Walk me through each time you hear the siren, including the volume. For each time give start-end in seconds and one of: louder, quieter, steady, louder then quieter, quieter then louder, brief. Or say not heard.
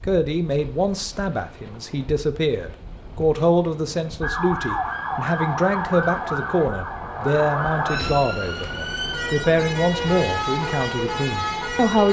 4.2-12.0 steady.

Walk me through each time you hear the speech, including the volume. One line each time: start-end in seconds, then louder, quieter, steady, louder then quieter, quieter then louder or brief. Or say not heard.
0.0-12.0 steady.